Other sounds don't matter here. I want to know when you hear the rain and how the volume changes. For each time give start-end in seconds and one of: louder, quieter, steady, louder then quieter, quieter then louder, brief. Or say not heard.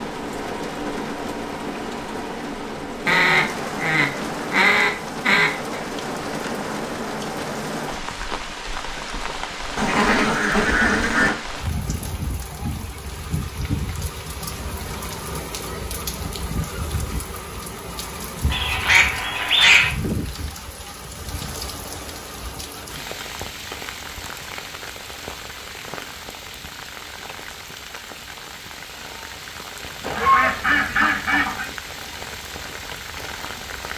0.0-33.9 quieter.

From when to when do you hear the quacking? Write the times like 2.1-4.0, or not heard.
3.0-5.8, 9.8-11.3, 18.5-19.9, 30.0-31.6.